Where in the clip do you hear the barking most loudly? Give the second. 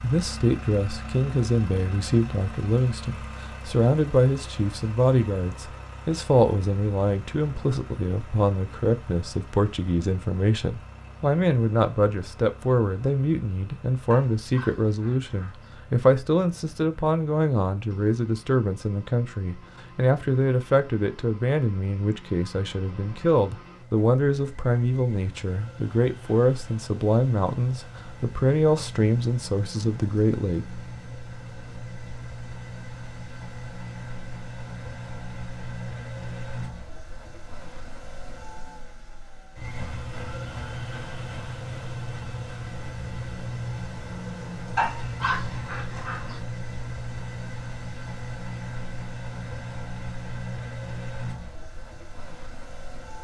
45 s.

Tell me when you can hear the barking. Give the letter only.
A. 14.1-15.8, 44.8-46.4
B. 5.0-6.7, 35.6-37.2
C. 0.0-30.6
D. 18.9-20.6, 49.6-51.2
A.